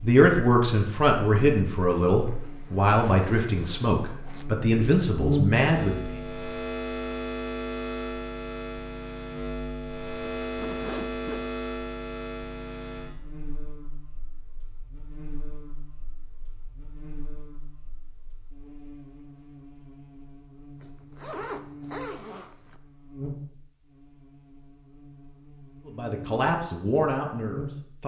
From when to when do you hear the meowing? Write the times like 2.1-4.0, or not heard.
not heard.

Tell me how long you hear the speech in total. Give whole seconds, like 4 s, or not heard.
8 s.